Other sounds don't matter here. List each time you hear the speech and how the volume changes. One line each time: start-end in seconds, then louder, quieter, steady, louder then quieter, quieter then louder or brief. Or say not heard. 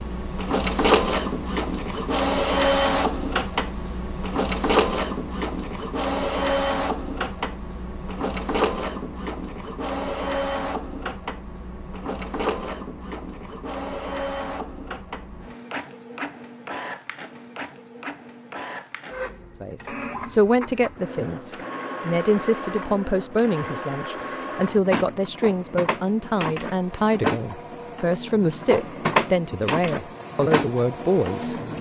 19.6-31.6 steady.